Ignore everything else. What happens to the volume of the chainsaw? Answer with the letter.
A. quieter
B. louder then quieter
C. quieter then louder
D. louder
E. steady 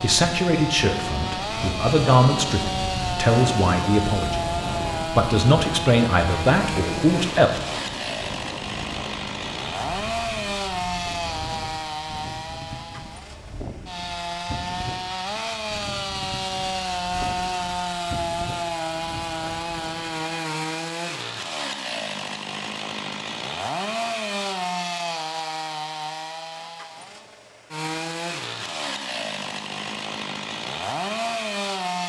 E.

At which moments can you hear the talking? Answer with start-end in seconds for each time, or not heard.
0.0-7.5.